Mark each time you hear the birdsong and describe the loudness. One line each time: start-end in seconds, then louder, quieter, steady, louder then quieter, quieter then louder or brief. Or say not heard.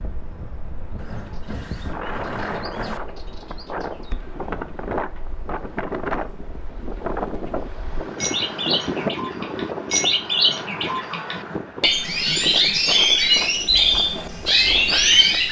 0.0-15.4 louder.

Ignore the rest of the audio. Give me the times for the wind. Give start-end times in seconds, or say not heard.
0.0-15.4.